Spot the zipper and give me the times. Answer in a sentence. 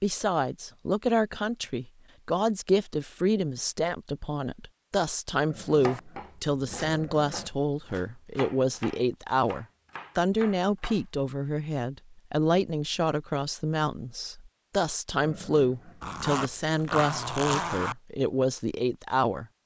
The zipper can be heard from 16.0 to 17.9 s.